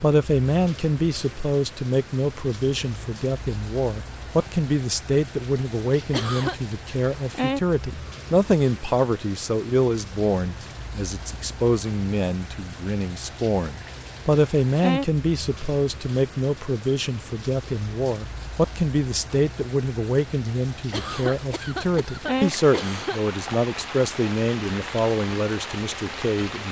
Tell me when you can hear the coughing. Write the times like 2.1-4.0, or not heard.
6.1-6.5, 20.9-23.2.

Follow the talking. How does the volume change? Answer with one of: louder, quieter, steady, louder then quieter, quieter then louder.
steady.